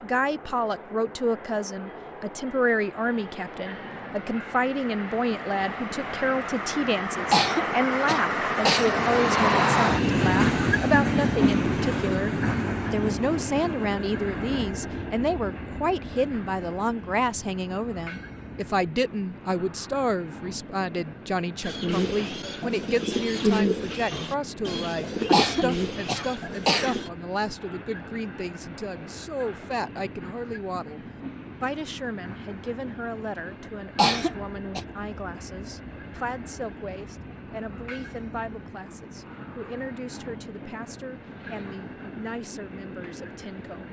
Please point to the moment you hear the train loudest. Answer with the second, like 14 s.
10 s.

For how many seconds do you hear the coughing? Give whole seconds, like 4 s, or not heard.
4 s.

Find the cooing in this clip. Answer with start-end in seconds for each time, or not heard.
21.6-27.1.